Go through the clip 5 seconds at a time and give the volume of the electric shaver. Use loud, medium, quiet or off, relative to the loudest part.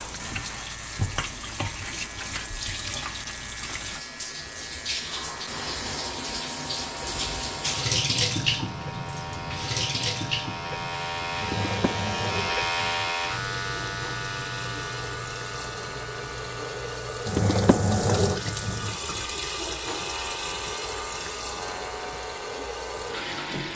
quiet, medium, loud, medium, medium.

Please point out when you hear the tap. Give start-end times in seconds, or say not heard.
0.0-23.7.